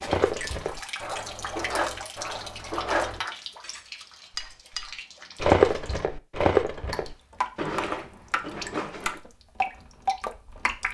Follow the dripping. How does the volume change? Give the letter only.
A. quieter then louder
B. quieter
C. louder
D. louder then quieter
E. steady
A.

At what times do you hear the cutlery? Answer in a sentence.
You can hear the cutlery from 0.1 to 9.2 s.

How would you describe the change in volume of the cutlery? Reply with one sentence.
The volume of the cutlery goes up, then down.